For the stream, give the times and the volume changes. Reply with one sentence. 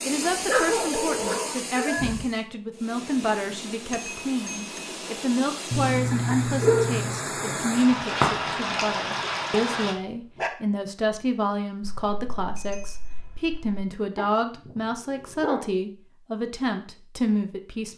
The stream can be heard from 0.0 to 9.9 s, getting quieter then louder.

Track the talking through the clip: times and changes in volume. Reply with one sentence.
The talking can be heard from 0.0 to 17.9 s, at a steady volume.